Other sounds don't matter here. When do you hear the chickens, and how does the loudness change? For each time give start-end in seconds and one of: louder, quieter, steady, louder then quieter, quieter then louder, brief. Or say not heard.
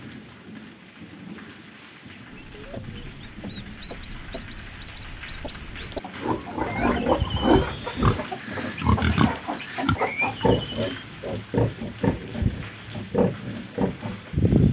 2.4-11.1 louder.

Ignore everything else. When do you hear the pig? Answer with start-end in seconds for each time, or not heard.
6.2-14.6.